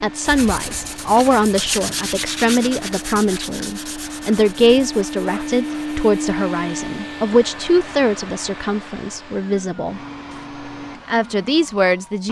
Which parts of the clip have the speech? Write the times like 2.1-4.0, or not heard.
0.0-10.0, 11.1-12.2.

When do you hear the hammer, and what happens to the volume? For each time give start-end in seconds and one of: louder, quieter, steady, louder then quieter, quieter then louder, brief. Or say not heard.
not heard.